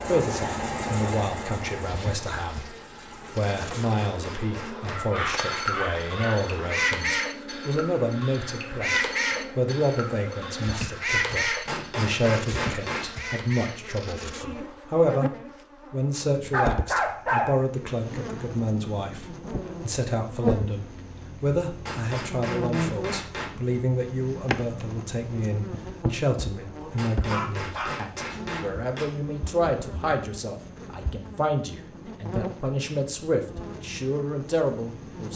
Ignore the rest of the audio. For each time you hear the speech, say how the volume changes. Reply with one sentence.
The speech can be heard briefly from 0.1 to 2.8 s; and from 3.4 to 35.3 s, at a steady volume.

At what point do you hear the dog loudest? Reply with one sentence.
The loudest moment of the dog is at 17 seconds.